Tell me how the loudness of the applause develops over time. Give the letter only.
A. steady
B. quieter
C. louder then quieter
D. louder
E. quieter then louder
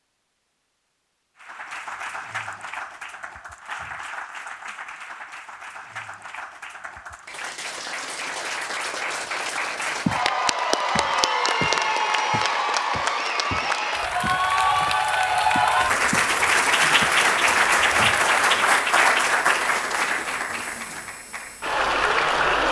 D.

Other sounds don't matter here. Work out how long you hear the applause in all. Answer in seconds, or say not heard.
21 s.